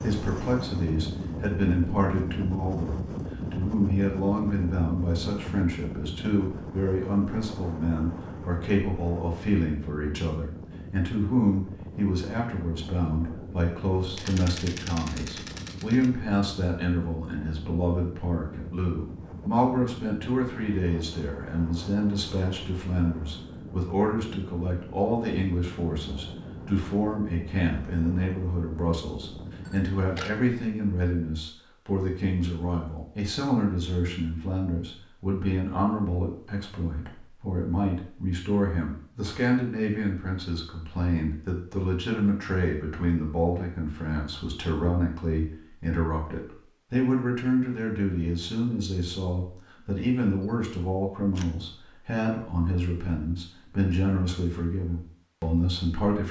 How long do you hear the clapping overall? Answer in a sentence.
You can't hear the clapping here.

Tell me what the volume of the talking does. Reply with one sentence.
The loudness of the talking stays about the same.